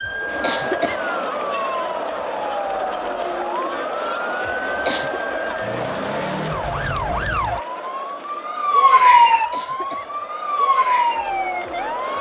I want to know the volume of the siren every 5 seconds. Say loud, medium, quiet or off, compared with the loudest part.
medium, loud, loud.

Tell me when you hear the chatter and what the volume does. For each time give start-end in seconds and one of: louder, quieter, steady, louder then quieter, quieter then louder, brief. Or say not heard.
0.0-12.1 quieter.